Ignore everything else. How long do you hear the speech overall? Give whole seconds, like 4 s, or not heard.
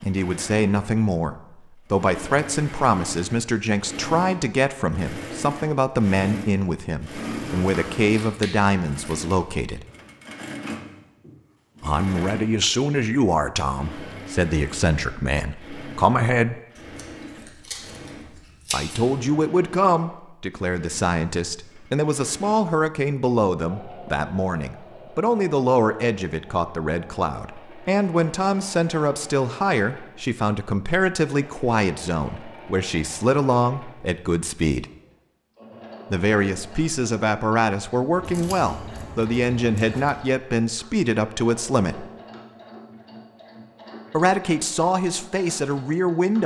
39 s.